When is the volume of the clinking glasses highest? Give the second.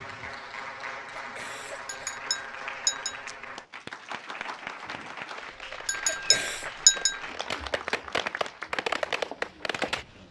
7 s.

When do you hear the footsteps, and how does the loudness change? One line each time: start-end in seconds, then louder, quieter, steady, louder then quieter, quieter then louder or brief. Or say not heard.
not heard.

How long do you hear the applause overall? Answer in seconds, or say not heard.
10 s.